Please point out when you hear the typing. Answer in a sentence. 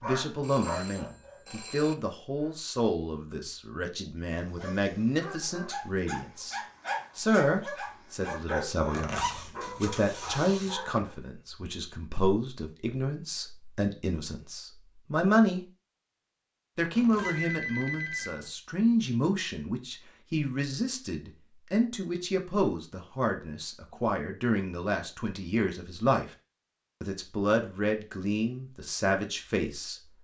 You can't hear the typing here.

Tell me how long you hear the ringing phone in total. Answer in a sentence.
You can hear the ringing phone for 3 seconds altogether.